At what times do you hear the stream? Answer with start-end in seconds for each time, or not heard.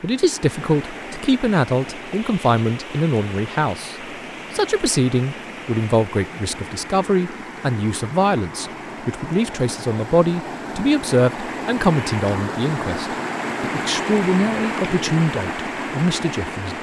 0.0-16.7.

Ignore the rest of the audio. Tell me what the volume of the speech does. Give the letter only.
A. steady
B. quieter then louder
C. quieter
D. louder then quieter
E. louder
A.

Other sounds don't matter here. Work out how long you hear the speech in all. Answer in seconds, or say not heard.
17 s.